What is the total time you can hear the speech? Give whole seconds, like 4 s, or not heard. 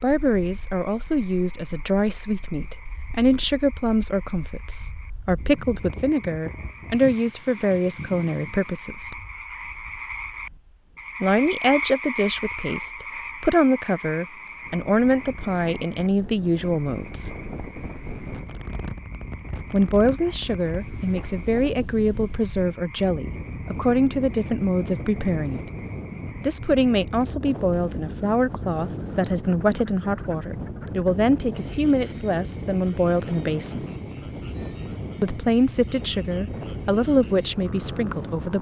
32 s.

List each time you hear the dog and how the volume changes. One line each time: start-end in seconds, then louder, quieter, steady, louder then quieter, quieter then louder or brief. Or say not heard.
not heard.